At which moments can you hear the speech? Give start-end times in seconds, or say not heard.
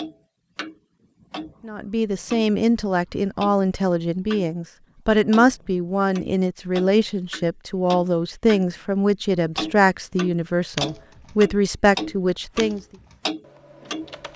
1.6-12.8.